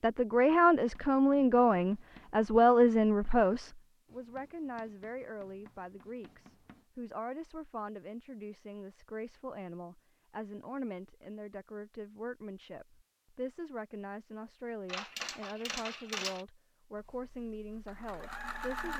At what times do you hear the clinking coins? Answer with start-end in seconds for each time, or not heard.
14.8-16.4.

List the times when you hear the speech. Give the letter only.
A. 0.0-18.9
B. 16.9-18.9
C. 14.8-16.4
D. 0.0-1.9
A.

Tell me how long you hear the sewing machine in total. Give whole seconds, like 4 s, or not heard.
2 s.